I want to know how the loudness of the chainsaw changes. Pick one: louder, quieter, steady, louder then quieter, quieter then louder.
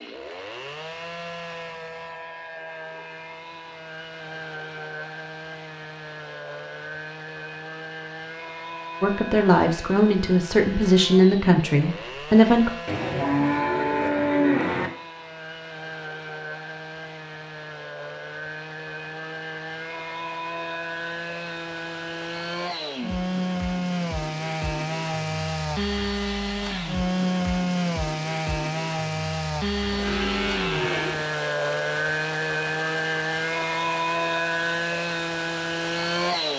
louder.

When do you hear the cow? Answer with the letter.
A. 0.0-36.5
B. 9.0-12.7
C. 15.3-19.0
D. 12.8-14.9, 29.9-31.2
D.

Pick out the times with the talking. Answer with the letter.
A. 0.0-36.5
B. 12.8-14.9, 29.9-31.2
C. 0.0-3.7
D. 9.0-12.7
D.